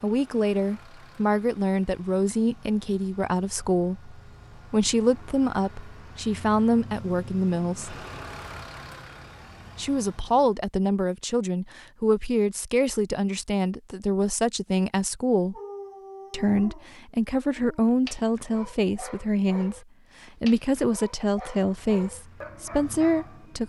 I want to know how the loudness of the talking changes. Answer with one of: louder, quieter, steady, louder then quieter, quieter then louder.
steady.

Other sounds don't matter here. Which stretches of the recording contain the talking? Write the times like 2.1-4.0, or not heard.
0.0-8.1, 9.8-15.6, 16.3-19.8, 20.4-23.6.